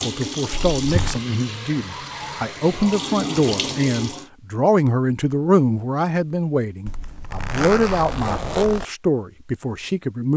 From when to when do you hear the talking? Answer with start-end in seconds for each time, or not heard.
0.0-10.3.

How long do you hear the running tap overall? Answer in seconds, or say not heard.
4 s.